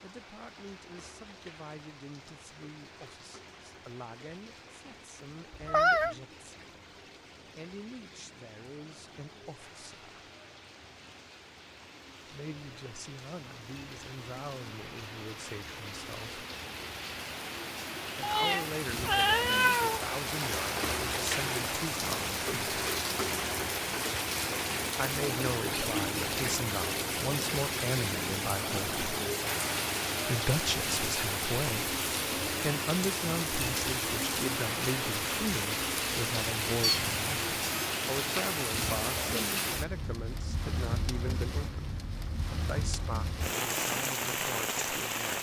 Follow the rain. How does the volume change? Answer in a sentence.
The loudness of the rain goes up.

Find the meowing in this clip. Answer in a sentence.
You can hear the meowing from 5.5 to 6.2 s, from 18.2 to 20.0 s and from 36.8 to 37.9 s.